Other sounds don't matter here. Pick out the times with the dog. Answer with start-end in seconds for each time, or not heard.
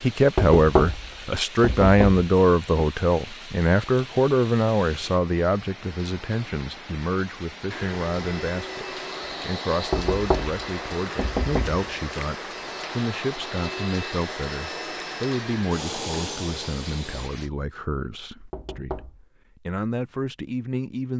not heard.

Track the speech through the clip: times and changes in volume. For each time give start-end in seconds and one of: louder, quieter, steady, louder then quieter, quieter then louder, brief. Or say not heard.
0.0-21.1 quieter.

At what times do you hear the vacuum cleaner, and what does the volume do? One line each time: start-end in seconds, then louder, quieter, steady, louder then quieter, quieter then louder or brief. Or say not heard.
7.7-17.3 steady.